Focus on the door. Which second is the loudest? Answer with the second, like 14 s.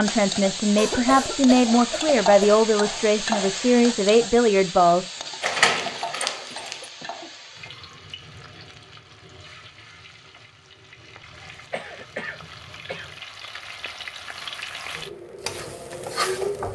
6 s.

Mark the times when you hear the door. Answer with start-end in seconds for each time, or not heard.
5.4-6.9.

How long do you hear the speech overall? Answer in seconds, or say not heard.
5 s.